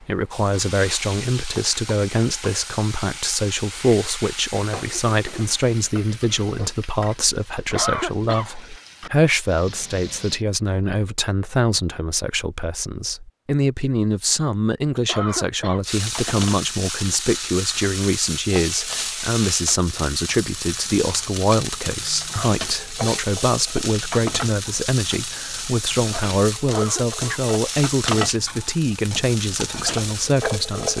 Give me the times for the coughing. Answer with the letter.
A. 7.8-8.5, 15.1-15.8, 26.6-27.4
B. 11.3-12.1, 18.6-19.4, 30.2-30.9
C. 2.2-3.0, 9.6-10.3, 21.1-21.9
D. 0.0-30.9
A.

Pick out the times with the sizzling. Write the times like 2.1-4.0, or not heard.
0.0-10.4, 15.8-30.9.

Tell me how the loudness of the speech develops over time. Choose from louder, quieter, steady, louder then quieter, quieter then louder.
steady.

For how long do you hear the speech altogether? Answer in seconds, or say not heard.
31 s.